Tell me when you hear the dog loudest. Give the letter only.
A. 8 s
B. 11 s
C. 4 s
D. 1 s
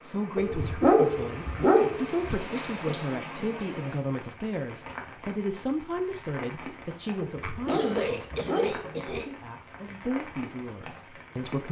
D.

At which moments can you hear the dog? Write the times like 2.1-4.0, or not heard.
0.3-2.1, 7.2-8.9.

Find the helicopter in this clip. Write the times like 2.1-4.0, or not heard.
not heard.